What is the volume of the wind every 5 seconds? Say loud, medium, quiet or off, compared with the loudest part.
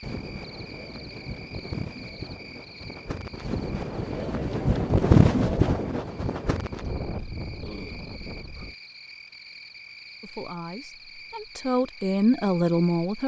medium, loud, off.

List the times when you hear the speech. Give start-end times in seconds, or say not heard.
10.2-13.2.